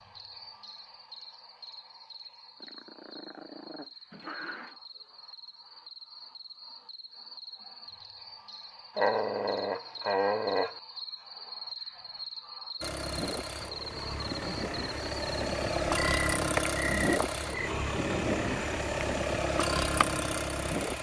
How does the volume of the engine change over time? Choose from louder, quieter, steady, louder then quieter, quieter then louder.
louder.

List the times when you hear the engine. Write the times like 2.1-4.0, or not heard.
12.8-20.9.